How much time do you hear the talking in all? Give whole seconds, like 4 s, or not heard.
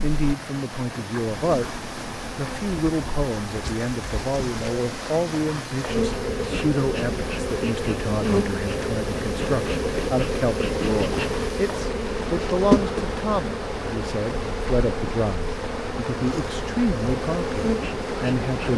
18 s.